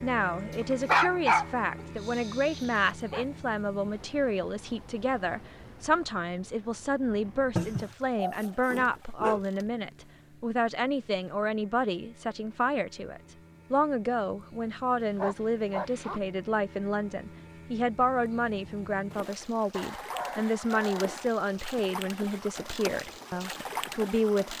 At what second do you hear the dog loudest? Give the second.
1 s.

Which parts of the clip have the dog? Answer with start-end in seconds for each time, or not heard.
0.5-3.2, 7.5-9.4, 14.9-16.2, 19.7-21.3.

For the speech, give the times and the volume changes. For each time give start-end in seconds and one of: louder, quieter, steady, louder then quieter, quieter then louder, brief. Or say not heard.
0.0-24.5 steady.